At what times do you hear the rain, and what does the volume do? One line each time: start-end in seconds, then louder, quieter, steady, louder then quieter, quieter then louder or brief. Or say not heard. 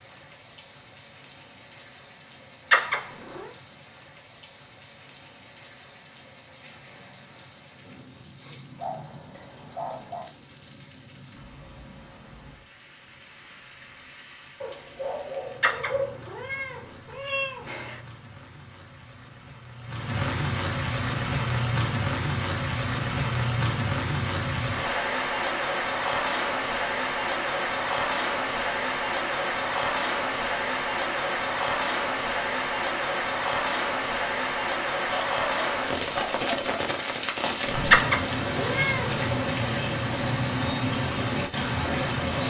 0.0-42.4 louder.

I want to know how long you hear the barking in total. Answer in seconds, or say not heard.
5 s.